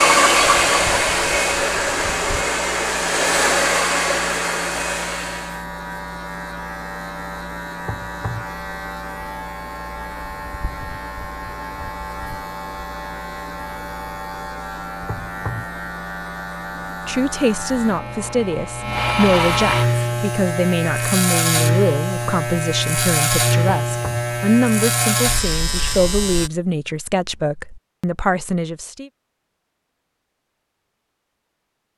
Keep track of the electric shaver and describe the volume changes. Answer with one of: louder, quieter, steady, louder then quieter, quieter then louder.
louder.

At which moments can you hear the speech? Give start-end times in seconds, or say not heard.
17.1-29.1.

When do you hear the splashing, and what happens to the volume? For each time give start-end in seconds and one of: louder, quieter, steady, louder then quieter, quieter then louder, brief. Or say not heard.
not heard.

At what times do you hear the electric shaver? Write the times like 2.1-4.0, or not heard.
0.0-26.5.